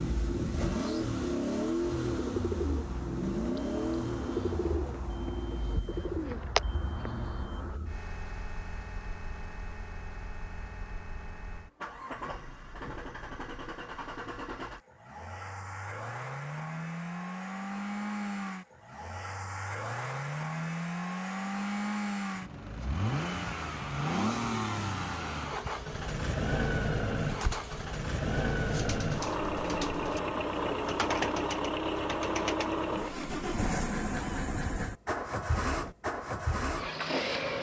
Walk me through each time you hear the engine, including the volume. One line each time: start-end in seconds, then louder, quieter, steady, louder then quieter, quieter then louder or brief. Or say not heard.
0.0-37.5 quieter then louder.